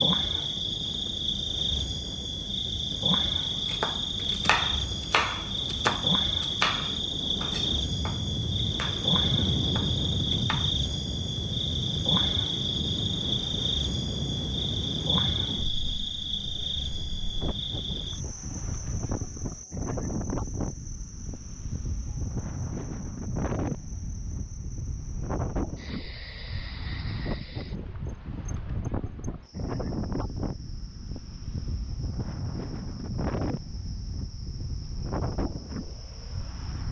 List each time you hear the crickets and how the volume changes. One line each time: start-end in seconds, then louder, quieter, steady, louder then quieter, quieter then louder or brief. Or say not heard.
0.0-36.8 quieter.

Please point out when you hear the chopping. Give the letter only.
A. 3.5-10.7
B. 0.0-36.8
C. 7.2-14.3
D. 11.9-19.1
A.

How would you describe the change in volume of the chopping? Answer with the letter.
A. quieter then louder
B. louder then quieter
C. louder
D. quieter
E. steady
D.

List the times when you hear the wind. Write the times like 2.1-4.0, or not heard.
0.0-36.8.